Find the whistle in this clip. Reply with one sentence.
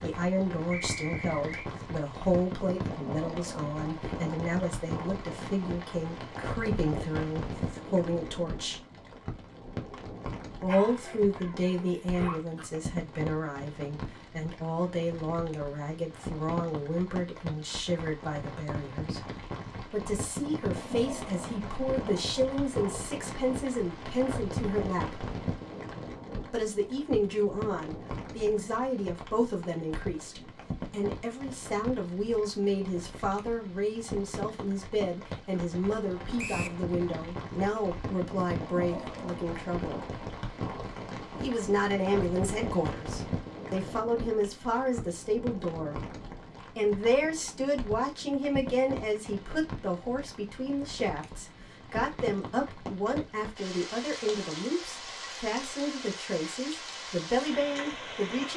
You can hear the whistle from 0.7 to 1.7 s and from 36.4 to 36.8 s.